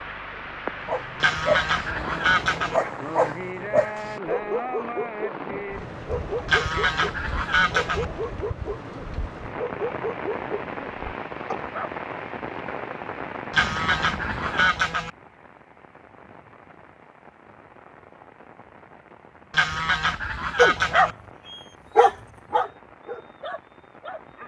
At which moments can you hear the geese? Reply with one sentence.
The geese can be heard from 1.2 to 2.8 s, from 6.5 to 8.1 s, from 13.5 to 15.1 s and from 19.5 to 21.1 s.